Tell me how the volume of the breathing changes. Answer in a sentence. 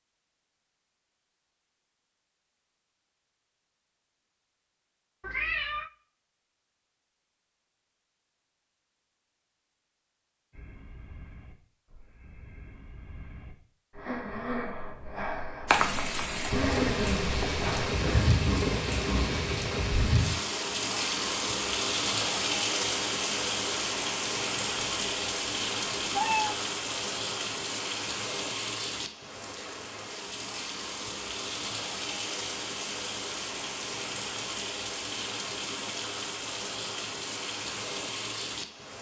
The volume of the breathing goes up.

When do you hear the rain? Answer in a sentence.
You can hear the rain from 15.7 to 38.9 s.